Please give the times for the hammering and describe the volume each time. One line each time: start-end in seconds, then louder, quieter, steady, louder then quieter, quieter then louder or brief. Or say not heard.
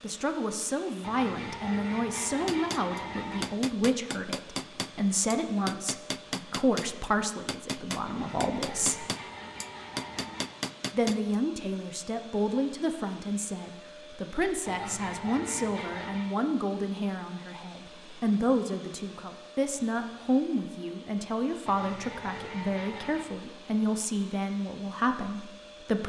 2.5-11.3 steady.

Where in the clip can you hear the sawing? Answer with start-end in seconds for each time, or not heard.
1.0-3.5, 8.1-10.6, 14.7-16.3, 21.6-23.3.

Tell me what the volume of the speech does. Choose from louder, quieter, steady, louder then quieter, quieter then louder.
steady.